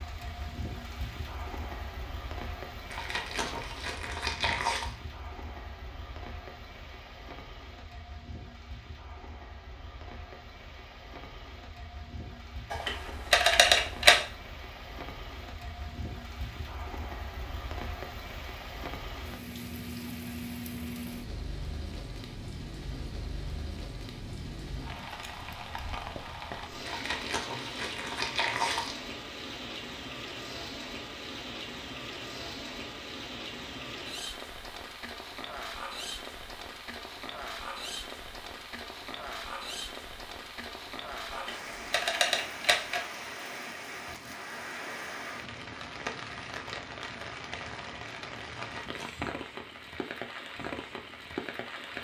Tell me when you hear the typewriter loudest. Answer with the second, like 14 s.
14 s.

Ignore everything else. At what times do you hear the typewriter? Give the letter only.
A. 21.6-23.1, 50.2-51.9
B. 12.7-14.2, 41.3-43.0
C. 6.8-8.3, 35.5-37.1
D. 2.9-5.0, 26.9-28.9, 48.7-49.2
B.